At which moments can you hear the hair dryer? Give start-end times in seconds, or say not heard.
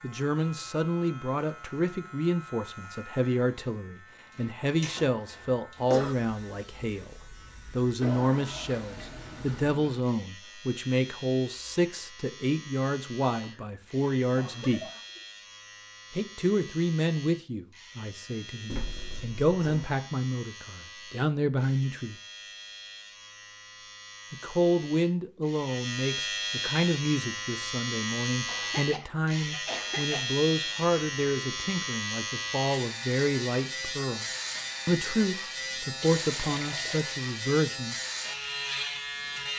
not heard.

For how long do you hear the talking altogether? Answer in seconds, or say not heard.
34 s.